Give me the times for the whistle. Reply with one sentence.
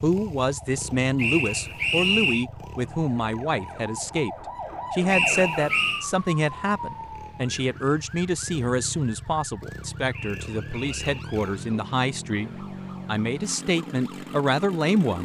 You can hear the whistle from 1.1 to 2.5 s, from 5.1 to 6.0 s and from 10.1 to 11.2 s.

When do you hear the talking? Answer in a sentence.
The talking can be heard from 0.0 to 15.1 s.